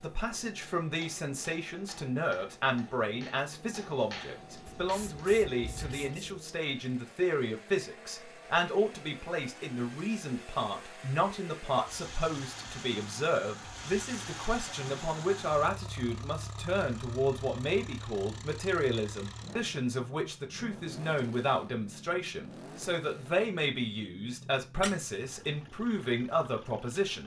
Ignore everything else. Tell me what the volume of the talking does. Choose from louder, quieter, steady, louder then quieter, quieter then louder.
steady.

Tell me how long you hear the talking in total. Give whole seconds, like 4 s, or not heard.
27 s.